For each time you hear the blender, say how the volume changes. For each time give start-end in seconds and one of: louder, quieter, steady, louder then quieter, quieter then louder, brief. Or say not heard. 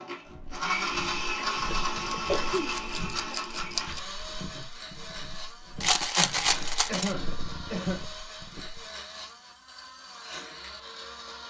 0.0-11.4 quieter.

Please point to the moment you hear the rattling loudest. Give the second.
6 s.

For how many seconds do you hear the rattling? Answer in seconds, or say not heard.
3 s.